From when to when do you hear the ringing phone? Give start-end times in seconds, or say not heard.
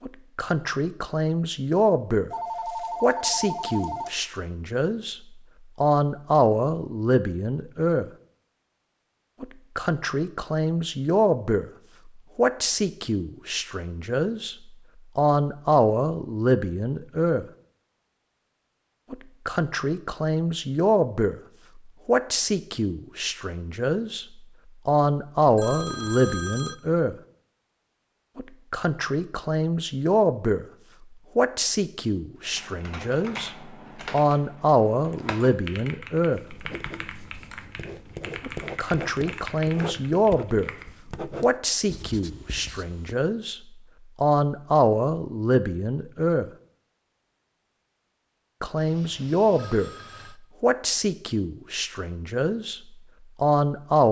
2.3-4.3, 25.4-26.8, 48.8-50.4.